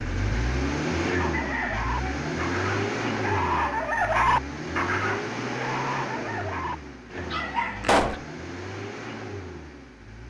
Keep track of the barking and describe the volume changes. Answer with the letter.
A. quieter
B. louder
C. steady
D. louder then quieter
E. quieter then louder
D.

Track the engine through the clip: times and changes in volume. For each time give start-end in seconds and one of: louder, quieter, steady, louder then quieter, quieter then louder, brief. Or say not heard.
0.0-10.2 quieter.